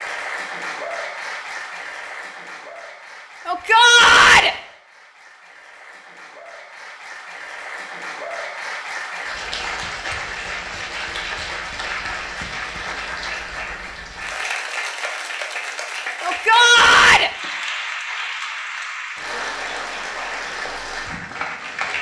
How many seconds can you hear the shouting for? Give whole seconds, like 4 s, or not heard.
2 s.